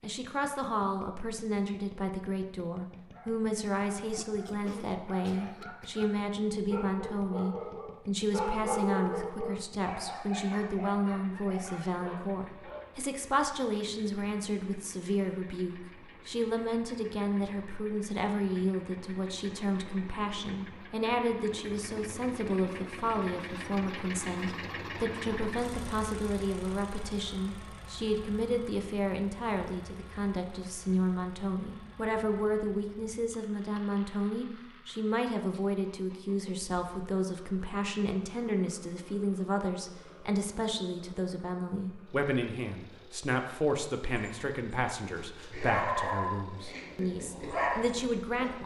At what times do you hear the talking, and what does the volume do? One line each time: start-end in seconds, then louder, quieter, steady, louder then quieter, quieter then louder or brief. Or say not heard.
0.0-48.6 steady.